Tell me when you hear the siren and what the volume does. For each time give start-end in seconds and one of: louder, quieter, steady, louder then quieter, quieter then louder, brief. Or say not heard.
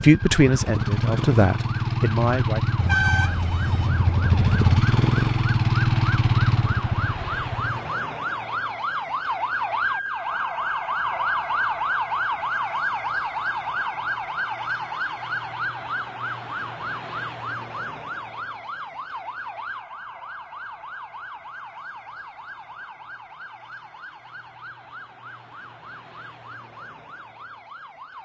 0.0-28.2 louder then quieter.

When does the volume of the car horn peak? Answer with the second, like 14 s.
3 s.